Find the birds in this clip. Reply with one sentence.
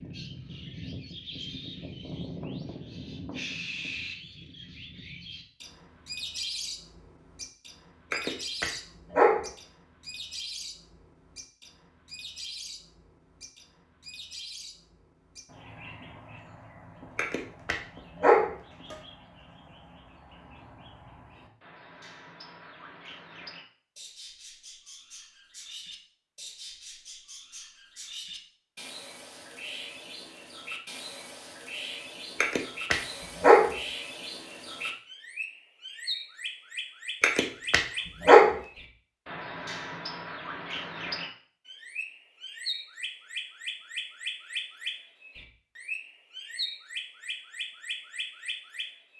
You can hear the birds from 0.0 to 49.1 s.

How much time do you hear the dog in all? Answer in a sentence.
The dog can be heard for 6 seconds in total.